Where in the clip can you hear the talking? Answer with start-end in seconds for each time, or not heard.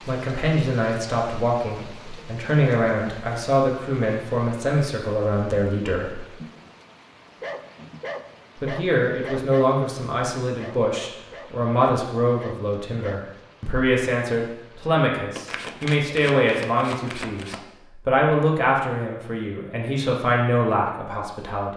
0.1-6.2, 8.6-21.7.